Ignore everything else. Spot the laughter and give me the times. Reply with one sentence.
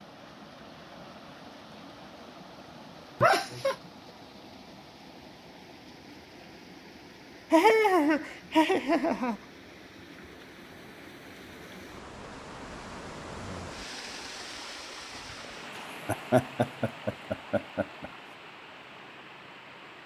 The laughter can be heard from 3.2 to 3.8 s, from 7.5 to 9.4 s and from 16.1 to 18.1 s.